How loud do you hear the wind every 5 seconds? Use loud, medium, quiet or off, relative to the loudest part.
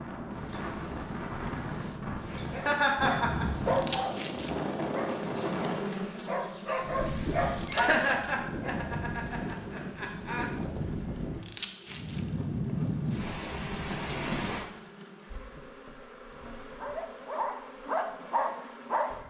loud, loud, loud, off.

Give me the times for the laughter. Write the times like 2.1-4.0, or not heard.
2.5-3.6, 7.7-10.5, 13.8-14.3.